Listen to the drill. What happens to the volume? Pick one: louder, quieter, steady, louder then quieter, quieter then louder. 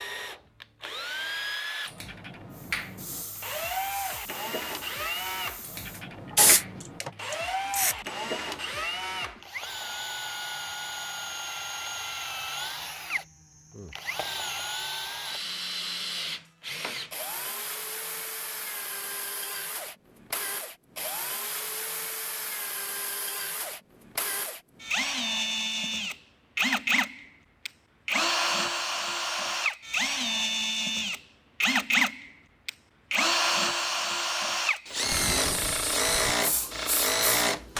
louder.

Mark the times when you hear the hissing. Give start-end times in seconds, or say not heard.
2.5-8.0, 35.0-37.7.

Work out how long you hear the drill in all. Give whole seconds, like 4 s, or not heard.
38 s.